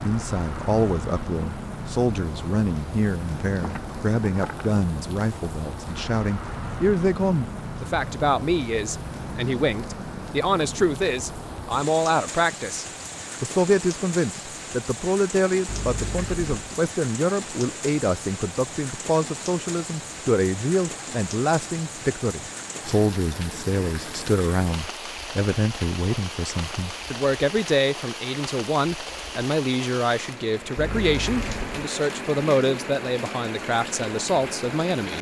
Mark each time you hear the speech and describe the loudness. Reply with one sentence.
You can hear the speech from 0.0 to 35.1 s, at a steady volume.